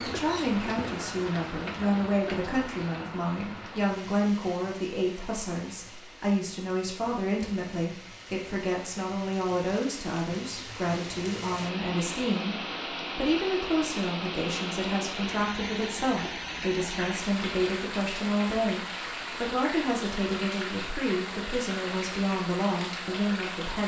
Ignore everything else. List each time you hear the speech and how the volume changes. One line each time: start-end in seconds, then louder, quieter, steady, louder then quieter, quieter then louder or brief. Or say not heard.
0.0-23.8 steady.